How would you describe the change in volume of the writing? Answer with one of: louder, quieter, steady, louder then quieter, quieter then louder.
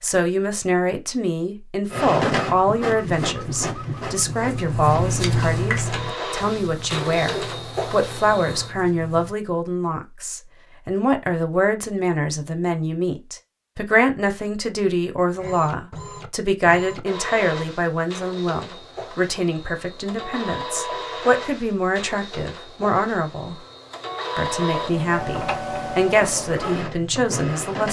louder then quieter.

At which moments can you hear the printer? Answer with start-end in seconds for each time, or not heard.
1.9-8.7, 15.4-27.8.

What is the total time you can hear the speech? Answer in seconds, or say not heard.
27 s.